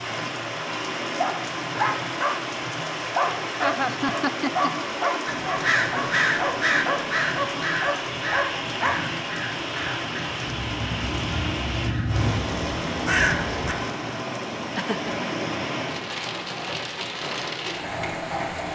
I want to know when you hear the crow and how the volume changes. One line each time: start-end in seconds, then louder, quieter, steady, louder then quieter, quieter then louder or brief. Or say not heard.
5.2-13.8 quieter then louder.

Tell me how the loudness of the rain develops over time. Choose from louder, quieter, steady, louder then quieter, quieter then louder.
steady.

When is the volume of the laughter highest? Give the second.
4 s.